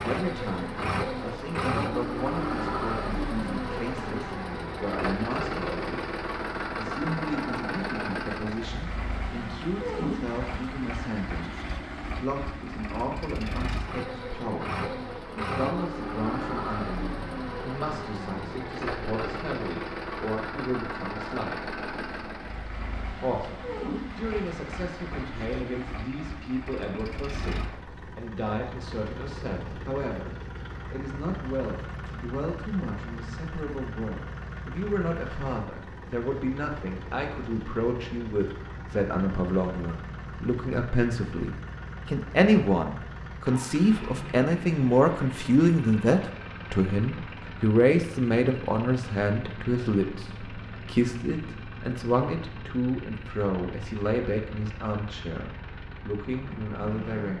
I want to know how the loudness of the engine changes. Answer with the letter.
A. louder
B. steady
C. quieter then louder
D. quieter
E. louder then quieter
D.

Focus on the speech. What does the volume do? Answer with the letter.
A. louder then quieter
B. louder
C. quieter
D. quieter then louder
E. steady
B.